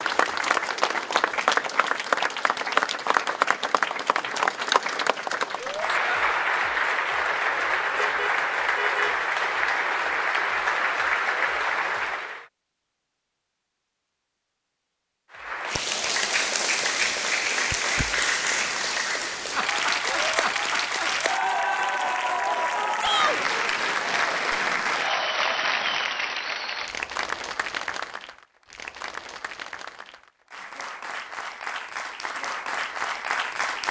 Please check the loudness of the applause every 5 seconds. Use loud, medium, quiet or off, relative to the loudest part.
loud, loud, loud, loud, loud, medium, medium.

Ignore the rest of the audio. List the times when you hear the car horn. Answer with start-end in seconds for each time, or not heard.
8.0-9.2.